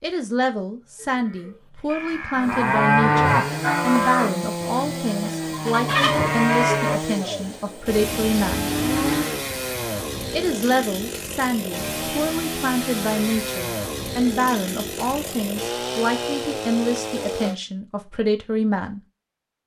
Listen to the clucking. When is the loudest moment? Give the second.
6 s.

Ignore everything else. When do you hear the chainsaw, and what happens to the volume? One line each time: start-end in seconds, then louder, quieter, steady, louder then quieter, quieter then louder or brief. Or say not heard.
2.4-17.6 steady.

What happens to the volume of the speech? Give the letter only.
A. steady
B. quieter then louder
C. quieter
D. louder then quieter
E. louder
A.